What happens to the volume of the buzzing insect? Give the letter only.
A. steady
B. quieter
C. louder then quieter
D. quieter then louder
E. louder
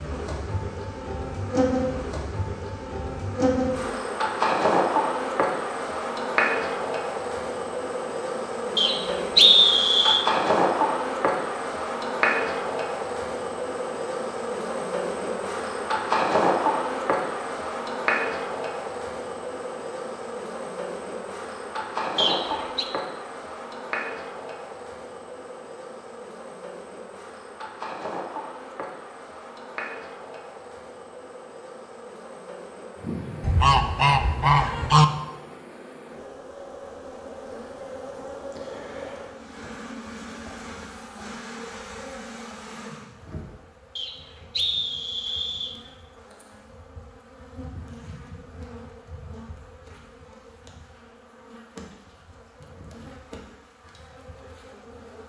B.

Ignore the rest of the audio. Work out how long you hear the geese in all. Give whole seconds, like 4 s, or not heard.
2 s.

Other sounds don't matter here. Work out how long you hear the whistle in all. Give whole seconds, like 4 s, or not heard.
4 s.